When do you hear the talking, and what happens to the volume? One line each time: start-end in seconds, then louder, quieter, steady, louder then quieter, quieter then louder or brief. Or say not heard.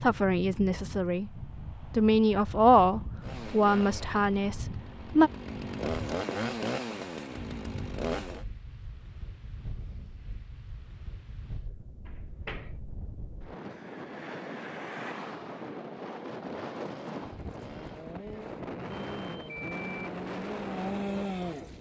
0.0-5.3 louder then quieter.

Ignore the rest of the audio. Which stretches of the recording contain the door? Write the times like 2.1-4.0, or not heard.
12.1-12.8.